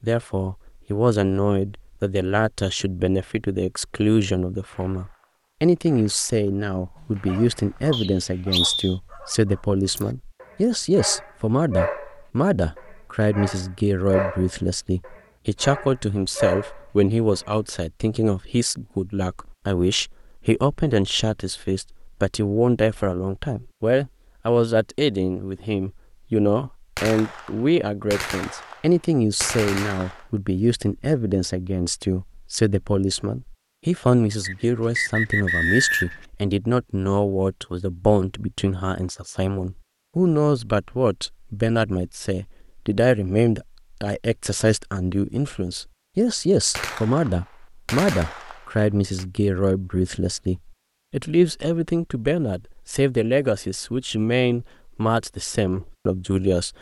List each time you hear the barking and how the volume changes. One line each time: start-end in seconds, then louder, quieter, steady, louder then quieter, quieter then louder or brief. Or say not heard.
7.0-17.5 louder.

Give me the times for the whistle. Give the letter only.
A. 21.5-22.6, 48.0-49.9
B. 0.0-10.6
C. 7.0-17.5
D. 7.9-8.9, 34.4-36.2
D.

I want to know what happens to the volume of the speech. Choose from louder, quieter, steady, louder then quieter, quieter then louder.
steady.